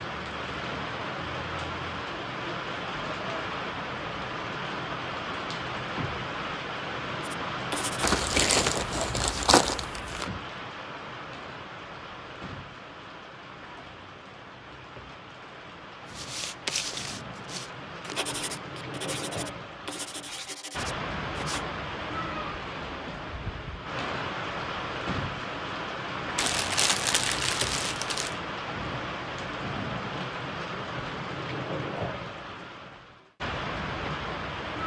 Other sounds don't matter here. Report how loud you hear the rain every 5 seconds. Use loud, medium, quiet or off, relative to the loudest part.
loud, loud, medium, medium, loud, loud, loud.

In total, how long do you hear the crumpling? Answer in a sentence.
You can hear the crumpling for 4 seconds altogether.